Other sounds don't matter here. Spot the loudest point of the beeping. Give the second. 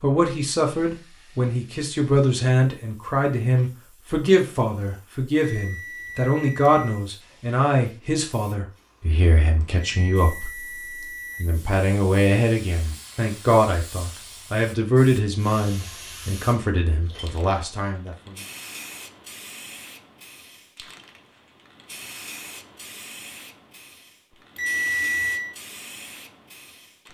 25 s.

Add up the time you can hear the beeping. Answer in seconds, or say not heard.
4 s.